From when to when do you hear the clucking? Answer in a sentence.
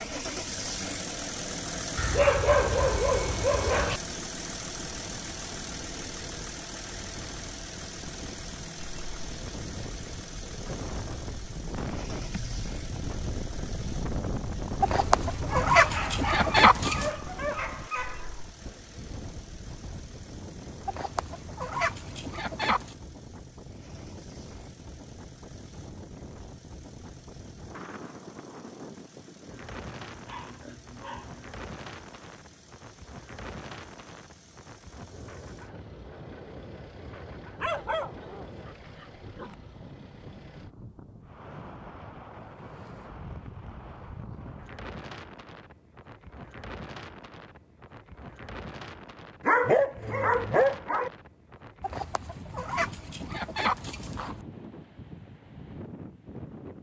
The clucking can be heard from 14.8 to 17.1 s, from 20.9 to 22.9 s and from 51.8 to 54.5 s.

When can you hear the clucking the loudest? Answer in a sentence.
The loudest moment of the clucking is at 17 seconds.